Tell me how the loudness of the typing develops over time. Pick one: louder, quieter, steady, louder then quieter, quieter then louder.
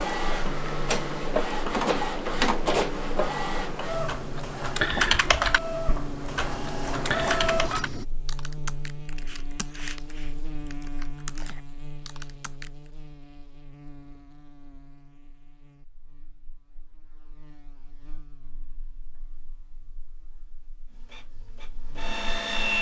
quieter.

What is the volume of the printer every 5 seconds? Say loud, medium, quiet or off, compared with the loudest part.
loud, loud, off, off, loud.